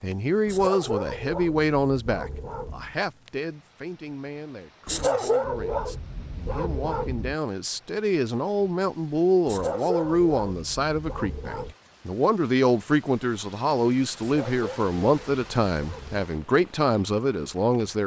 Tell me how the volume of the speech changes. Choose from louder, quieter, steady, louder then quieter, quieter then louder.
quieter then louder.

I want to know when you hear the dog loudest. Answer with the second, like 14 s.
5 s.